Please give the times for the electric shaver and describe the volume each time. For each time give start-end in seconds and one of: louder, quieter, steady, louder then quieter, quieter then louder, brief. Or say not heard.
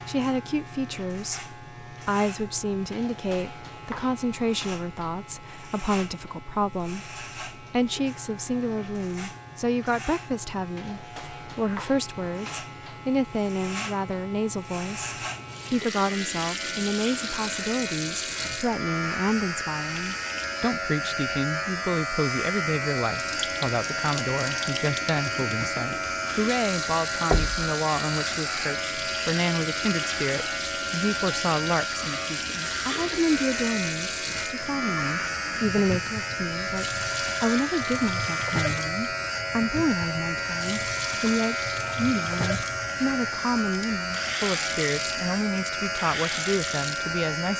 0.0-47.5 louder.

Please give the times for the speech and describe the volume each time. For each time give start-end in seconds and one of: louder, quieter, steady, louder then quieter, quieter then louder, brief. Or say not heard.
0.1-47.5 steady.